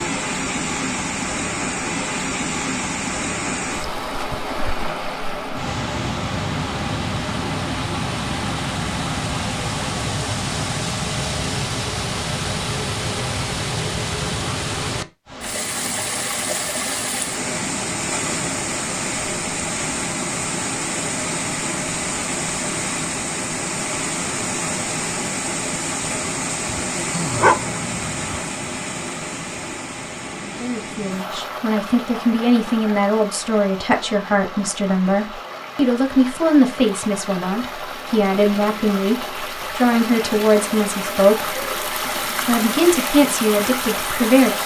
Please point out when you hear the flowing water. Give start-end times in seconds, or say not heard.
0.0-44.6.